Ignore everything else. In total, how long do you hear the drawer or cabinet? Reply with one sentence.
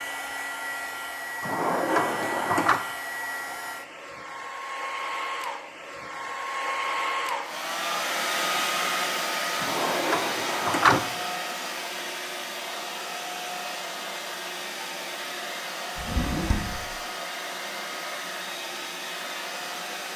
The drawer or cabinet can be heard for 4 seconds in total.